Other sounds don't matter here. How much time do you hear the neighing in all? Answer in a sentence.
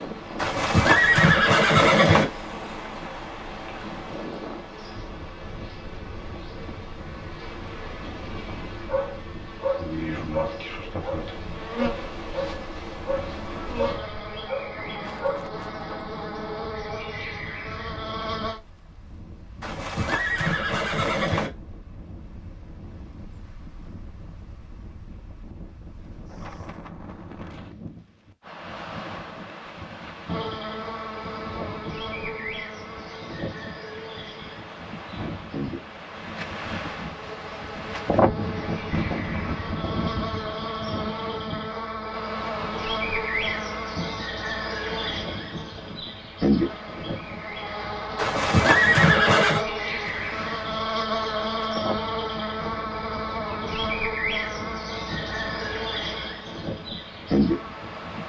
The neighing can be heard for 5 seconds in total.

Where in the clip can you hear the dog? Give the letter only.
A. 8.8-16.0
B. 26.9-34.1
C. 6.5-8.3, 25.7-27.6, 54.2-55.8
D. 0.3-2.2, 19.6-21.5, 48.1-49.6
A.